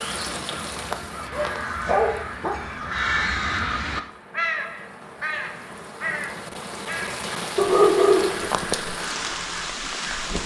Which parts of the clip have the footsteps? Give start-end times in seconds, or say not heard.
not heard.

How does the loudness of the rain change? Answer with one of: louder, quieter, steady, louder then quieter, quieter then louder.
quieter then louder.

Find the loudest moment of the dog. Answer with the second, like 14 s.
8 s.